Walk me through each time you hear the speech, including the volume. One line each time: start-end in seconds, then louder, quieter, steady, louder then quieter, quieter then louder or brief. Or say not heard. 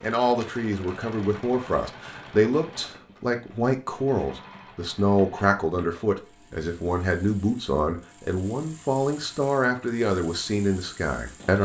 0.0-11.5 steady.